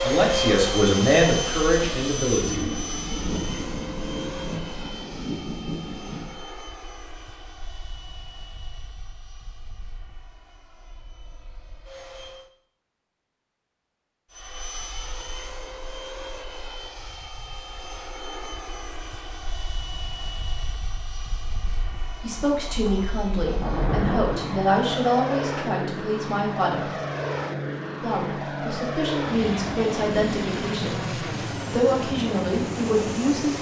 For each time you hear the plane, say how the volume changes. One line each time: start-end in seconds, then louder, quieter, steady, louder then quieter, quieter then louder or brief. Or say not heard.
0.0-12.5 quieter
14.3-33.5 louder.